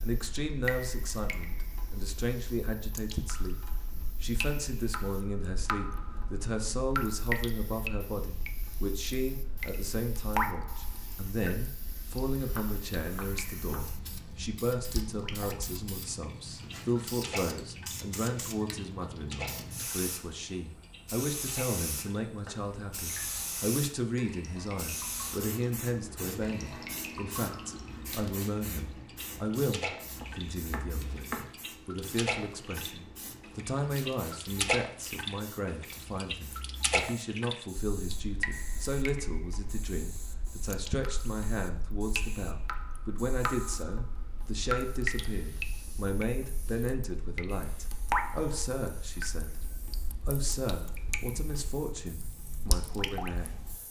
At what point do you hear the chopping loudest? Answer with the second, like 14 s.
31 s.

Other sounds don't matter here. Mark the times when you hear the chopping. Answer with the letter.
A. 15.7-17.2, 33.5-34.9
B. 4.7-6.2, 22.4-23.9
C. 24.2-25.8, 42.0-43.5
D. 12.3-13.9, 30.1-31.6
D.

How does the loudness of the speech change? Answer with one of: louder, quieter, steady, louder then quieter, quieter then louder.
steady.